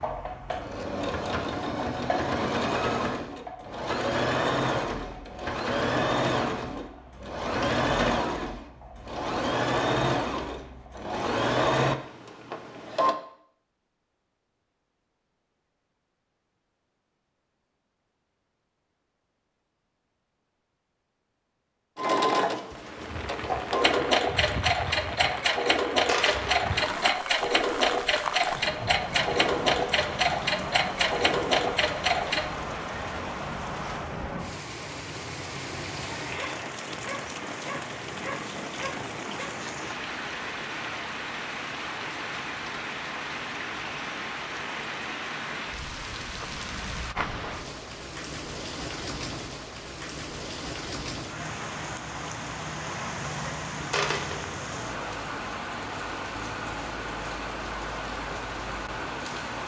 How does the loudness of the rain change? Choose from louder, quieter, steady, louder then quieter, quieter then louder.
steady.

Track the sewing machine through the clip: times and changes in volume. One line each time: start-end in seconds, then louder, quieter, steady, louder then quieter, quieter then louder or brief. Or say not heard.
0.0-13.2 steady
21.9-32.5 steady.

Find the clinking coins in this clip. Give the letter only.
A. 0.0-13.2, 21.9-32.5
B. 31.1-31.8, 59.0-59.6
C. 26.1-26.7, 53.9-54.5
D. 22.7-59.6
C.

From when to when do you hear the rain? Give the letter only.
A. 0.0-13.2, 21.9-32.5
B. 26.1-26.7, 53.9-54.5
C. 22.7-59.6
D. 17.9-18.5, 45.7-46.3
C.